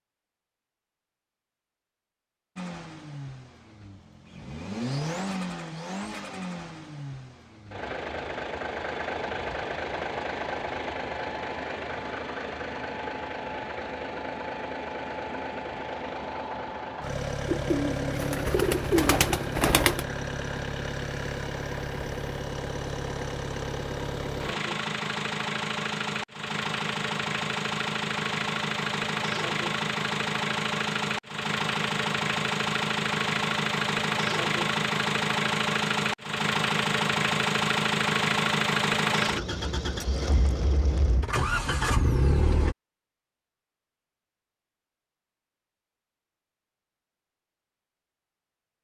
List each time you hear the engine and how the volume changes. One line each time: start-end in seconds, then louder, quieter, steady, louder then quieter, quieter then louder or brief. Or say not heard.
2.5-42.8 louder.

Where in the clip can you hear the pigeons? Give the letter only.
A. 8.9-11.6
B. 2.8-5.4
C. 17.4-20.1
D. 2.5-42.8
C.